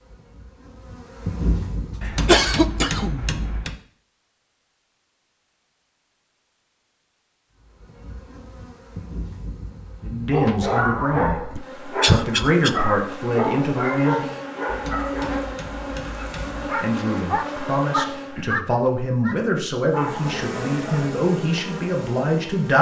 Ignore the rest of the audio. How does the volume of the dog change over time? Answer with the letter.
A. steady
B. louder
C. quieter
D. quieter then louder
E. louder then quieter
C.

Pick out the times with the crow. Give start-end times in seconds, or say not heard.
not heard.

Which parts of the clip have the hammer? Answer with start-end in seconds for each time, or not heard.
2.0-3.8, 14.7-16.6.